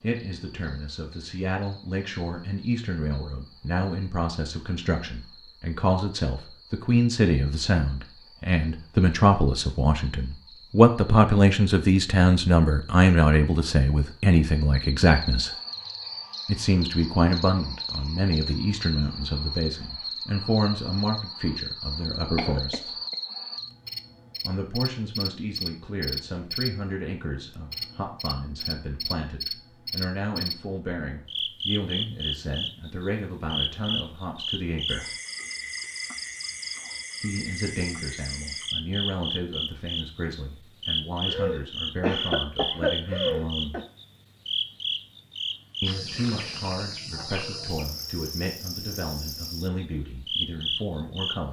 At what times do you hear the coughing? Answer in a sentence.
You can hear the coughing from 22.4 to 23.1 s and from 41.2 to 43.9 s.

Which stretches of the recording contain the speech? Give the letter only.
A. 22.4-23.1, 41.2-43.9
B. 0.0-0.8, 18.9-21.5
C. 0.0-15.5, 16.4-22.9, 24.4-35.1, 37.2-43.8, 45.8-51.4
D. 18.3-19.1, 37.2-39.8
C.